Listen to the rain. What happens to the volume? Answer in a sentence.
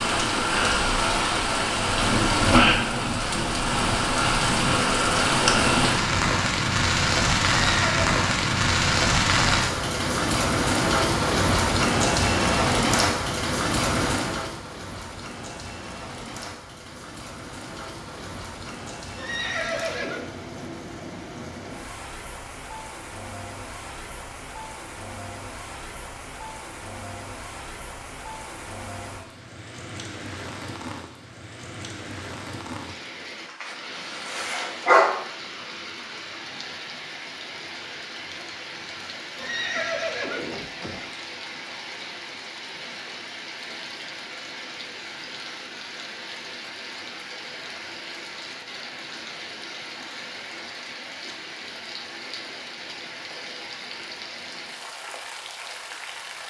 The volume of the rain goes down.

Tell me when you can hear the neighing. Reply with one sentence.
You can hear the neighing from 7.7 to 8.1 s, from 19.1 to 20.4 s and from 39.4 to 41.1 s.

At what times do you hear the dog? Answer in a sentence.
You can hear the dog from 33.6 to 35.1 s.